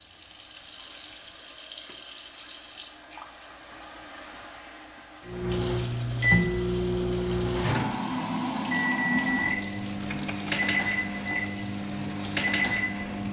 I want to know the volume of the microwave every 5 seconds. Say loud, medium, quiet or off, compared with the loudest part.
off, loud, loud.